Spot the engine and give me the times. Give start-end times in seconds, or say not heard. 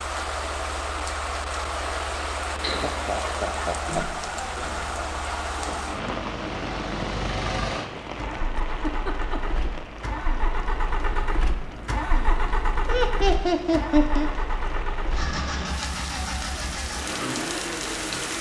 0.0-18.3.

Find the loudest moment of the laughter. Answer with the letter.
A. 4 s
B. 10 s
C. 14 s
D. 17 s
C.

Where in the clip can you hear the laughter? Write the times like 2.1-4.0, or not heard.
2.6-4.0, 8.7-9.6, 12.8-14.3.